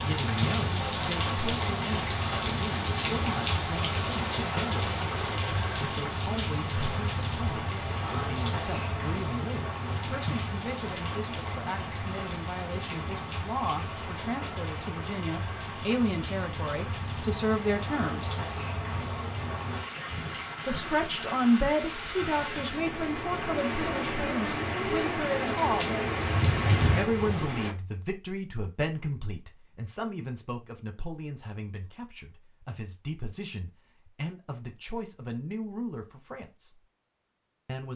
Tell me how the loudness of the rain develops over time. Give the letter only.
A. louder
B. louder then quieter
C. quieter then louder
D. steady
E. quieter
C.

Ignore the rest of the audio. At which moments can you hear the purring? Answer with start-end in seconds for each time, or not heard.
not heard.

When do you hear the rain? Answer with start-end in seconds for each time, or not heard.
0.0-27.8.